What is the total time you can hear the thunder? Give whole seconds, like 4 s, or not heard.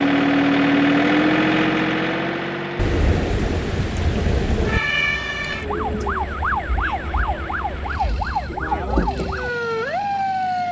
2 s.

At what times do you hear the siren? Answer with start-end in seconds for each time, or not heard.
4.7-10.6.